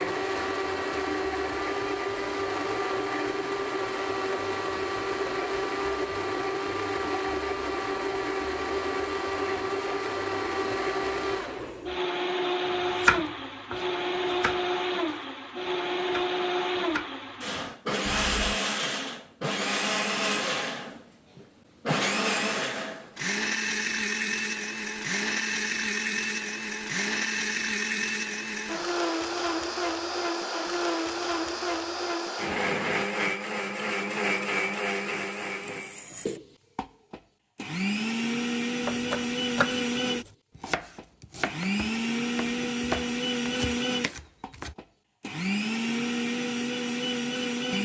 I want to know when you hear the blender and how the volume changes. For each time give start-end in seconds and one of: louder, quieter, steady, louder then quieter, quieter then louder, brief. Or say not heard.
0.0-47.7 steady.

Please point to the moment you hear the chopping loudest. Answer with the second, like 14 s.
13 s.